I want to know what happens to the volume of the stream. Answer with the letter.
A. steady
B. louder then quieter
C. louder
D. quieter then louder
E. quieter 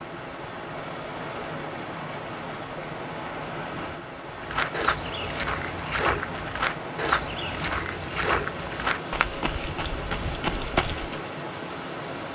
A.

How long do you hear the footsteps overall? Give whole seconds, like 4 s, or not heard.
7 s.